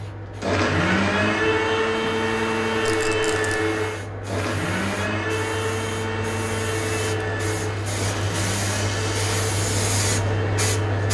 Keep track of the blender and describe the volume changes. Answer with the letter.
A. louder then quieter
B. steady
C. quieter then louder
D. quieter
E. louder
D.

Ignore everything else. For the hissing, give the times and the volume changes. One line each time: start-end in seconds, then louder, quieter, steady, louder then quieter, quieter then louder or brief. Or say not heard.
0.0-11.0 louder.